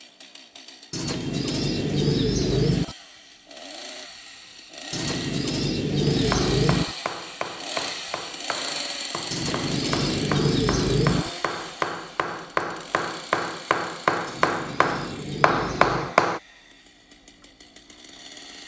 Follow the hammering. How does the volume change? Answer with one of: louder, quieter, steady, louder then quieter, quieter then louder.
louder.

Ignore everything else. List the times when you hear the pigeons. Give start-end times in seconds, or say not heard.
0.9-3.0, 4.9-7.0, 9.3-11.3, 14.2-16.1.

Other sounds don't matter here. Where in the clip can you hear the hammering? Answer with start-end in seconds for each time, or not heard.
6.3-16.4.